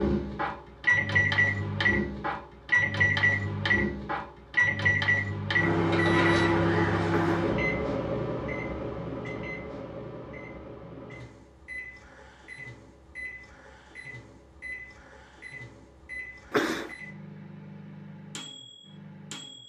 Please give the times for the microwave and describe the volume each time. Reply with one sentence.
You can hear the microwave from 0.0 to 19.6 s, getting quieter.